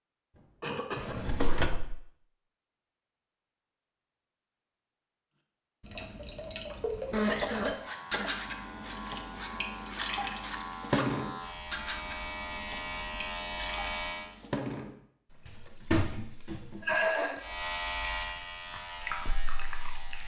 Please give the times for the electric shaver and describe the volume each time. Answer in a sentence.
You can hear the electric shaver from 7.7 to 14.3 s, getting louder; and briefly from 17.4 to 20.2 s.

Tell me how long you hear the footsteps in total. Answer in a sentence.
You can't hear the footsteps here.